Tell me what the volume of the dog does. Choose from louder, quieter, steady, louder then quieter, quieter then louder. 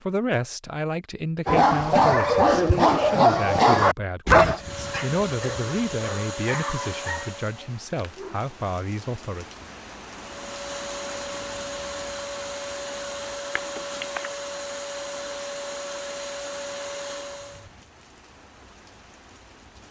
quieter.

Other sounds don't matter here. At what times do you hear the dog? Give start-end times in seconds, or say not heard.
1.4-8.4.